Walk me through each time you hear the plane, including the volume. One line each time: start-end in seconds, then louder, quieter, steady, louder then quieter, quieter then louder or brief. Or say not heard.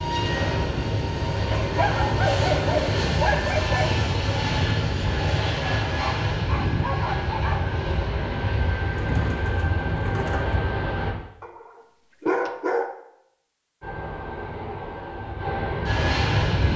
0.0-11.2 steady
13.8-16.7 brief.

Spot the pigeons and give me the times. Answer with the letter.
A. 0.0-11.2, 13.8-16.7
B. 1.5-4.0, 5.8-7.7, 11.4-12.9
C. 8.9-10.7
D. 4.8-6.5
C.